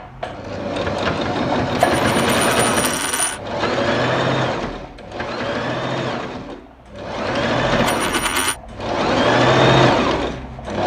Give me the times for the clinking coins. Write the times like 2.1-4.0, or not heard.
1.8-3.4, 7.8-8.6.